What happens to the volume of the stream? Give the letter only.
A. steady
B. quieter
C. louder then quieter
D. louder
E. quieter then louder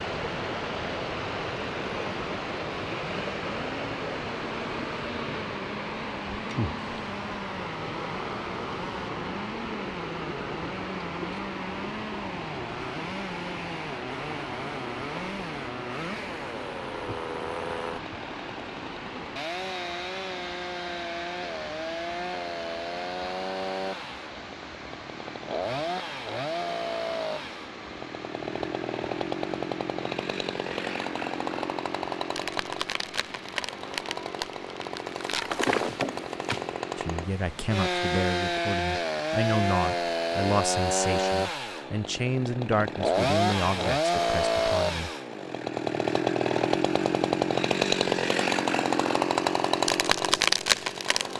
B.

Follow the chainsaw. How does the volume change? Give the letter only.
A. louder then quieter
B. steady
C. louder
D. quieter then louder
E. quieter
C.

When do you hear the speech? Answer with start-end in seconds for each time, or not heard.
37.0-45.1.